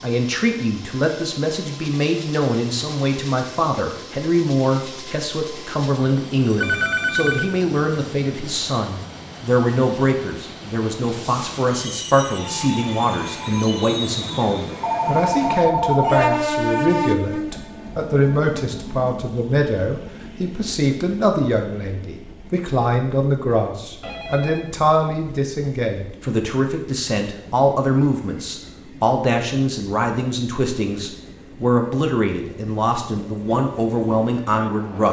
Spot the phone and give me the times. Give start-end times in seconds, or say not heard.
6.6-7.5, 14.8-16.5, 24.0-24.8.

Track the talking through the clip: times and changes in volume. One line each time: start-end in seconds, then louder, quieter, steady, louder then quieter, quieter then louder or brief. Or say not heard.
0.0-35.0 steady.